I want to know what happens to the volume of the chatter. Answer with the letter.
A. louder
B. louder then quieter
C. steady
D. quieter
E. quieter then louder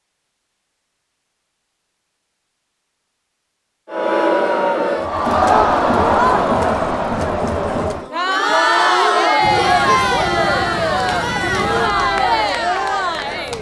C.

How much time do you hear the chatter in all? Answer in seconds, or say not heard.
10 s.